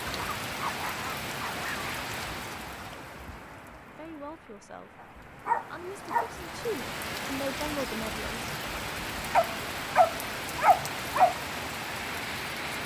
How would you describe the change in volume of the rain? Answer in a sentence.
The volume of the rain goes down, then up.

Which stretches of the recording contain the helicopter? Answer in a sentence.
You can't hear the helicopter here.